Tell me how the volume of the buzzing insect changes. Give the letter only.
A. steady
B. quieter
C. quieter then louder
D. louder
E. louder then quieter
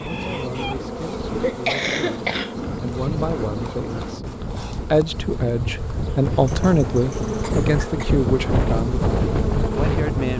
C.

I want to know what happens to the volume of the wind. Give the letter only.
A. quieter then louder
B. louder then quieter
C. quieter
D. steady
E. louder
E.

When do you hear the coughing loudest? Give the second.
2 s.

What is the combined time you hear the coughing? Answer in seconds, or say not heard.
3 s.